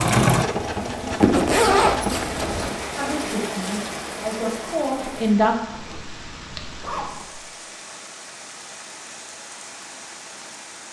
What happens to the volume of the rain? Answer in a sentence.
The loudness of the rain goes down.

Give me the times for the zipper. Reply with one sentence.
The zipper can be heard from 1.2 to 2.7 s and from 5.7 to 7.5 s.